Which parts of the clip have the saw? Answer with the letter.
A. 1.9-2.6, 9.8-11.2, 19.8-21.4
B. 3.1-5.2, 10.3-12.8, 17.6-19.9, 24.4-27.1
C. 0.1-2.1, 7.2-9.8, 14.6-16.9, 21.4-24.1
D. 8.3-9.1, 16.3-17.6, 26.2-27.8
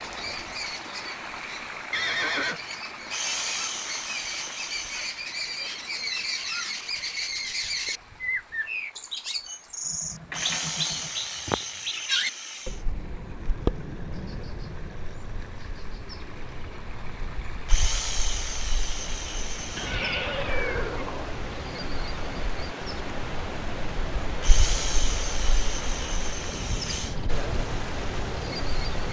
B.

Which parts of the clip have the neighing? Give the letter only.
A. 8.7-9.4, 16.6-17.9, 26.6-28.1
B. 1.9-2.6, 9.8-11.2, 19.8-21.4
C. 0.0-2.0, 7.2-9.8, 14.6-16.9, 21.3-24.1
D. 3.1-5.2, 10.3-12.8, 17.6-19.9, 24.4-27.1
B.